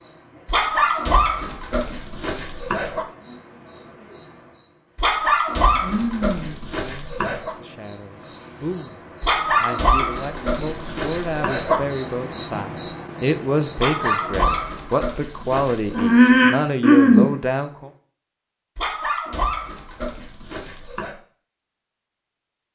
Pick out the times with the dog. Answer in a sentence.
The dog can be heard from 0.5 to 3.0 s, from 5.0 to 7.5 s, from 9.2 to 11.8 s, from 13.8 to 16.1 s and from 18.8 to 21.1 s.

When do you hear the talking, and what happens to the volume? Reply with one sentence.
The talking can be heard from 6.8 to 17.9 s, getting louder.